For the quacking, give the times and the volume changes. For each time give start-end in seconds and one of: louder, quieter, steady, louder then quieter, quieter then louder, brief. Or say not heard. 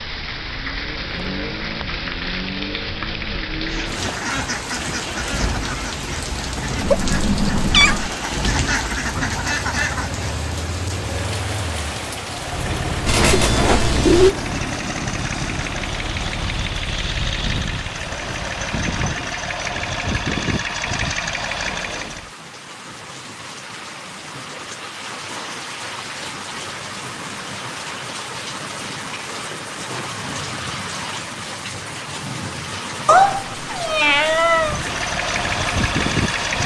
3.6-10.4 quieter then louder.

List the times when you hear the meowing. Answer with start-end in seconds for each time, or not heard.
6.8-8.2, 13.1-14.3, 33.0-34.8.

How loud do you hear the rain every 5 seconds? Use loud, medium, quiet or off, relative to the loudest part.
loud, loud, loud, medium, medium, loud, loud, loud.